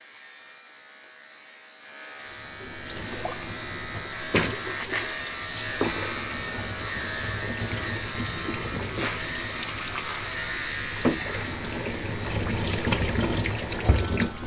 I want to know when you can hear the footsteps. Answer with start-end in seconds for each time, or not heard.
not heard.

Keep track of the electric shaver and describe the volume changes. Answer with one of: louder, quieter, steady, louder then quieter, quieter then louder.
louder then quieter.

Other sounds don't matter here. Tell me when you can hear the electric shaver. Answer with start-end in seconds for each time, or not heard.
0.0-14.4.